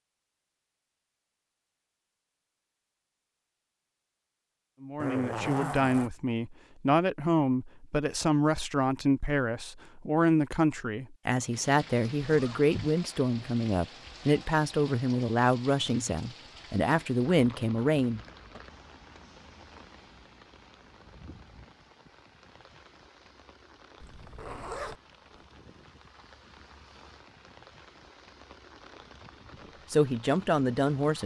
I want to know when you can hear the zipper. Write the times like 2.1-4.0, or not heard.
5.0-6.1, 11.6-12.9, 24.0-25.4.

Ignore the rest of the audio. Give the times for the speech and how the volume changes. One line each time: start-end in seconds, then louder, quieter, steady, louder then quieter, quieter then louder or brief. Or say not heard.
4.8-18.6 steady
29.9-31.2 brief.